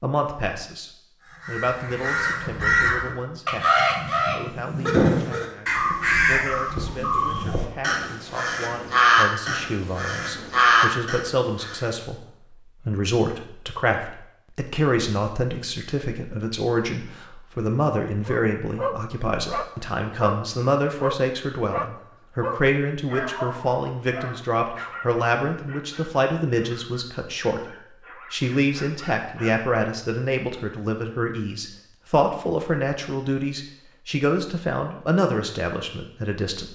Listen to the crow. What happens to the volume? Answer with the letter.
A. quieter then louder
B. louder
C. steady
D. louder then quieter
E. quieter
C.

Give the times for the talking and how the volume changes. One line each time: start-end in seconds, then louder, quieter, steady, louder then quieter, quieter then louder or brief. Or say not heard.
0.0-36.7 louder.